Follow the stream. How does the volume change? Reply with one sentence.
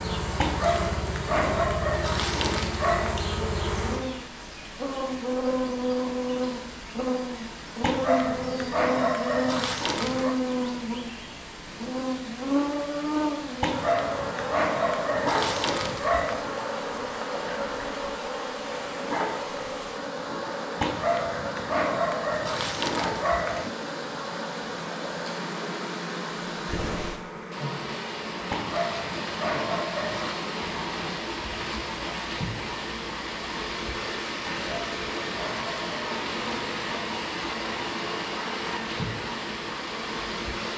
The loudness of the stream goes up.